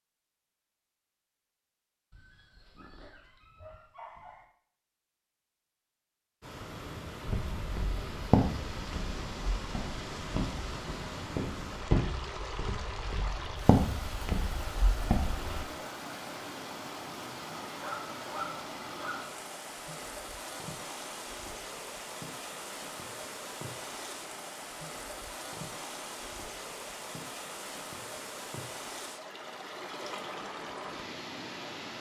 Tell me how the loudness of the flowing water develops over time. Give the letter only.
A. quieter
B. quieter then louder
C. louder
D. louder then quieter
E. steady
E.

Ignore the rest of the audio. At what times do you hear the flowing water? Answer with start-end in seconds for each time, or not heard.
6.4-31.9.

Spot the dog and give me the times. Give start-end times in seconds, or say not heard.
2.1-4.5, 17.6-19.4.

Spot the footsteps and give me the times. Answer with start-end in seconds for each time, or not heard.
7.2-15.7.